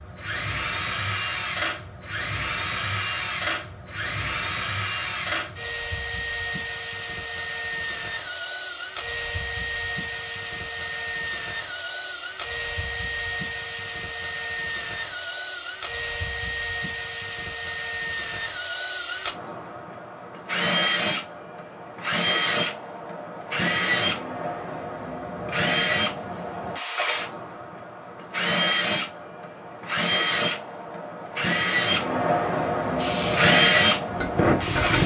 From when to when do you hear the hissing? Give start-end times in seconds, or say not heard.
33.0-35.0.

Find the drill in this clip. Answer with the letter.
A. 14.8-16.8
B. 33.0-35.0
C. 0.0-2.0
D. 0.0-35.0
D.